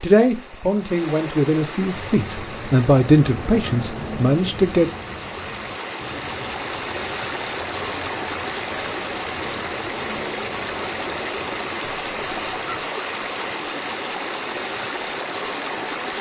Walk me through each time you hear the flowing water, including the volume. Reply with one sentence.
The flowing water can be heard from 0.0 to 16.1 s, getting louder.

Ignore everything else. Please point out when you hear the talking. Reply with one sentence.
You can hear the talking from 0.0 to 4.9 s.